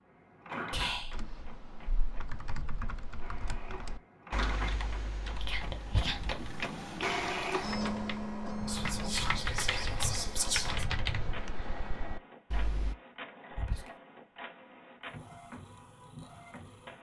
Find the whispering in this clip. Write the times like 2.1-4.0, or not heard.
0.7-1.3, 5.3-6.5, 8.7-10.8, 13.5-13.9.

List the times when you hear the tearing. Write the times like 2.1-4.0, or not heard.
not heard.